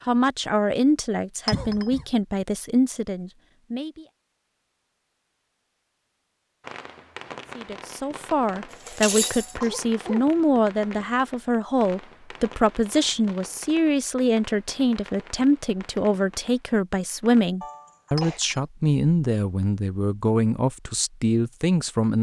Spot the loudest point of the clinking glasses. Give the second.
9 s.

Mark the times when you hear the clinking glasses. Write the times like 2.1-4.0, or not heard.
1.4-1.9, 8.7-9.7, 18.1-18.6.